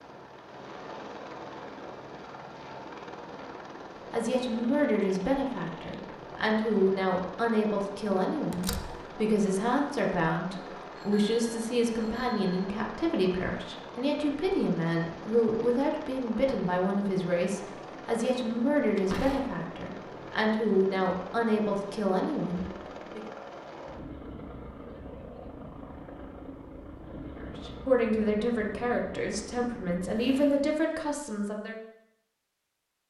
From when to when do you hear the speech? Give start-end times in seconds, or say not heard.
4.1-23.2, 27.4-31.8.